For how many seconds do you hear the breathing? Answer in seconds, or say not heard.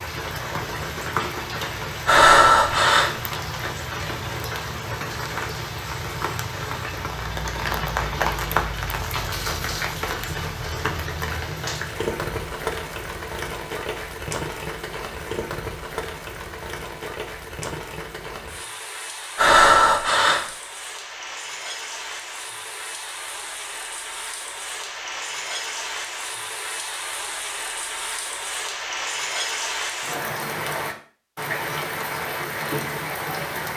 2 s.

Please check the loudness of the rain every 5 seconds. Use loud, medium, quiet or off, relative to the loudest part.
loud, loud, loud, medium, medium, loud, loud.